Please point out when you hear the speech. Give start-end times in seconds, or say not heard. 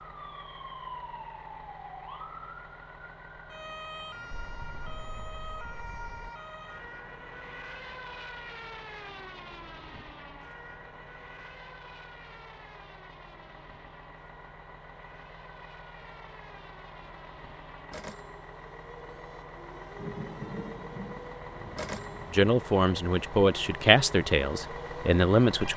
22.3-25.7.